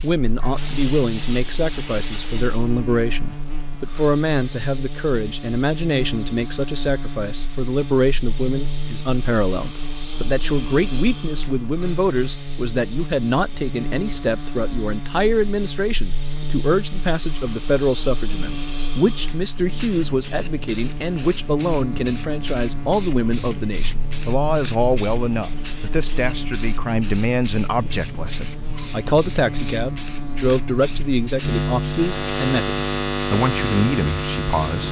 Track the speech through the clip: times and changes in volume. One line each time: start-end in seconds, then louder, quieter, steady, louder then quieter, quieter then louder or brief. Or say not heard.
0.0-34.8 steady.